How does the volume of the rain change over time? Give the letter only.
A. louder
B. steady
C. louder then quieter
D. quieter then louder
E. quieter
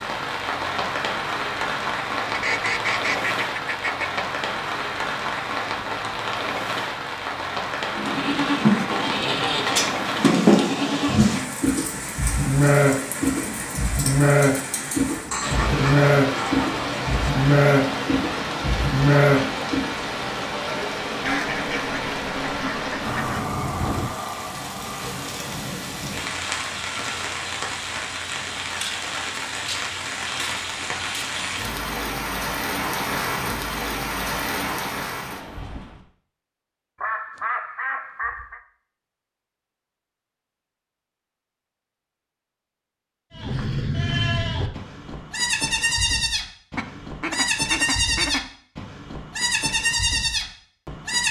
B.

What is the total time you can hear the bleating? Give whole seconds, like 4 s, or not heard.
20 s.